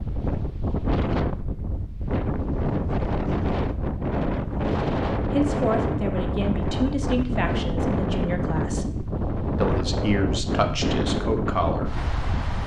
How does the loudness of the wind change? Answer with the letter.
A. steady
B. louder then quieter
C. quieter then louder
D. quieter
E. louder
A.